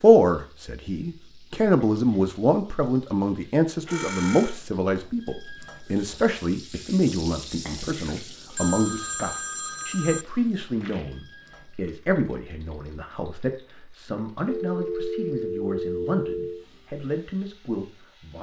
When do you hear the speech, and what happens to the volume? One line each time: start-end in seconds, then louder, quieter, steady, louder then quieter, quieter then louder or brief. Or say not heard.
0.0-18.3 quieter.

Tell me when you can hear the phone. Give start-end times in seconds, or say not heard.
3.9-4.5, 8.6-10.2, 14.4-16.6.